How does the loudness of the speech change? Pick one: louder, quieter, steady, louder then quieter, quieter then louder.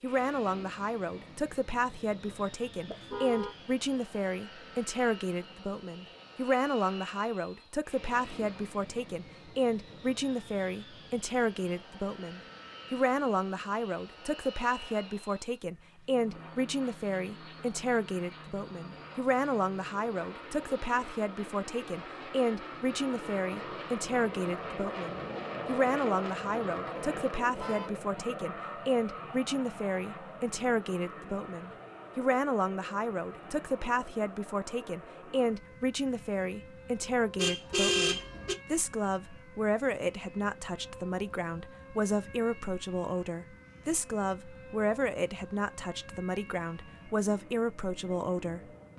steady.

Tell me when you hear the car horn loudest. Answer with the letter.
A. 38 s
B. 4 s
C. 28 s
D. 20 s
A.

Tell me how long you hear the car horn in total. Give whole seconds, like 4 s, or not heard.
3 s.